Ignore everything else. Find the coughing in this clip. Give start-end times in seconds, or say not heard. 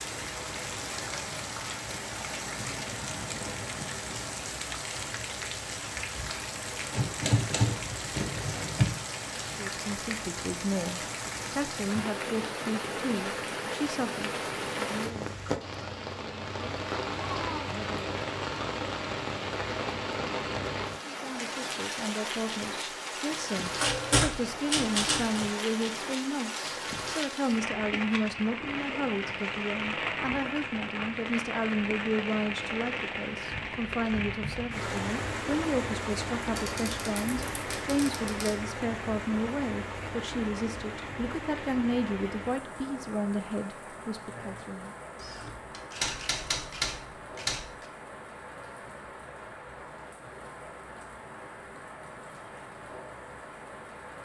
not heard.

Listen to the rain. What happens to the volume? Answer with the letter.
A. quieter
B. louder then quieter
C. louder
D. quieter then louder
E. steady
A.